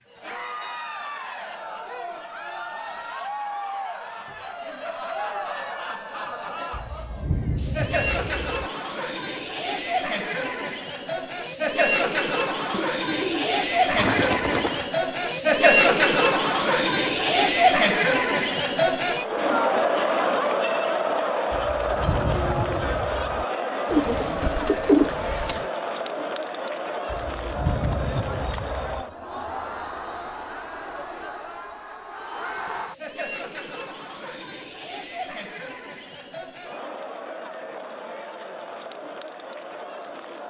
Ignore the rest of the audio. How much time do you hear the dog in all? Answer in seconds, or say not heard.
not heard.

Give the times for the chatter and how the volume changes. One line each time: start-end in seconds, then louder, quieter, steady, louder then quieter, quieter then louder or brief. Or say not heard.
0.1-40.4 louder then quieter.